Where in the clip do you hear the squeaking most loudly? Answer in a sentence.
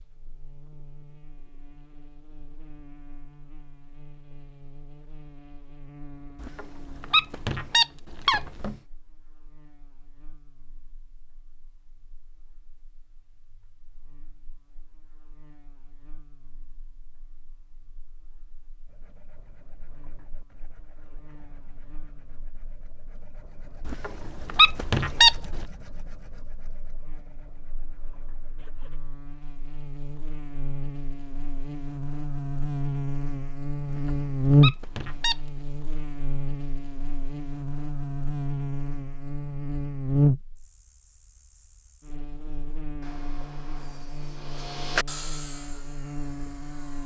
The loudest moment of the squeaking is at 25 seconds.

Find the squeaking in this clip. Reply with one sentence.
You can hear the squeaking from 6.4 to 8.8 s, from 23.9 to 25.6 s and from 33.9 to 35.4 s.